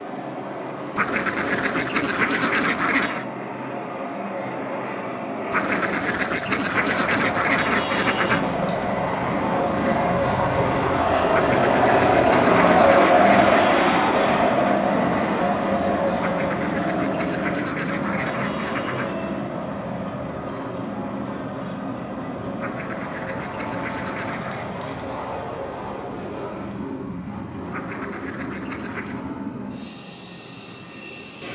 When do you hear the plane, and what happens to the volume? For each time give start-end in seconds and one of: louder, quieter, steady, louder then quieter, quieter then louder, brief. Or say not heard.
0.0-31.4 louder then quieter.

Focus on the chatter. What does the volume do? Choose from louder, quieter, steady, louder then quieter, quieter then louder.
louder then quieter.